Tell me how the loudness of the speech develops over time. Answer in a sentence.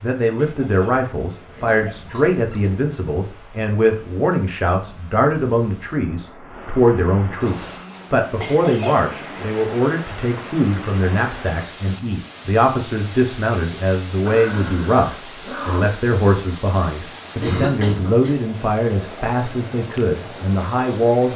The volume of the speech stays about the same.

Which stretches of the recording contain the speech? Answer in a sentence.
You can hear the speech from 0.0 to 21.3 s.